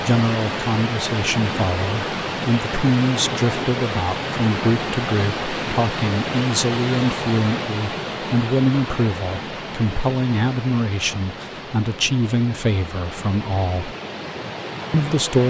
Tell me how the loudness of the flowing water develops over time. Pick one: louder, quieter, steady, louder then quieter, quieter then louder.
quieter.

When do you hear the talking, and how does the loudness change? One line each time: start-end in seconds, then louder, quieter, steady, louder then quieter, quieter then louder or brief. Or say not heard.
0.0-13.9 steady
14.9-15.4 brief.